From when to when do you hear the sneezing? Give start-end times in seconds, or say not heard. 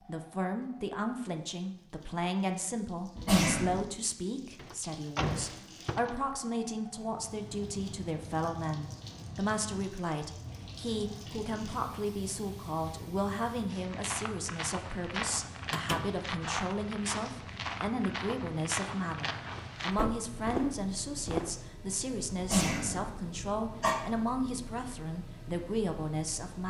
3.1-3.9, 22.4-23.9.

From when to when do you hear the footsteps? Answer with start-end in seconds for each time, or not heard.
13.7-21.6.